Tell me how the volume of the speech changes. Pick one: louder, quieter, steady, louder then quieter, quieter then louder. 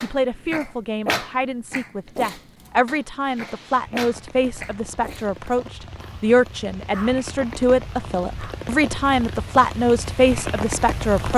louder.